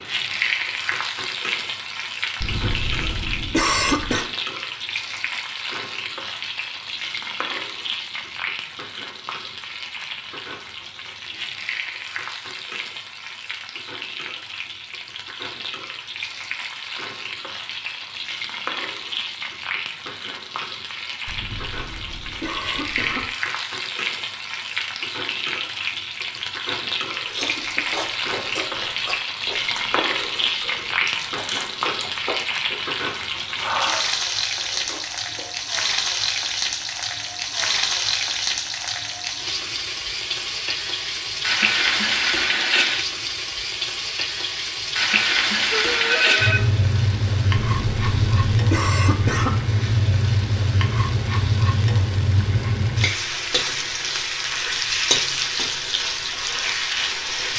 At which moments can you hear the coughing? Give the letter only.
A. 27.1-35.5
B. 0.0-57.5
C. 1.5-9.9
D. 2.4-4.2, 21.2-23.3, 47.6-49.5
D.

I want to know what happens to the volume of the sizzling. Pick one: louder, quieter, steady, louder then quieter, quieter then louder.
louder.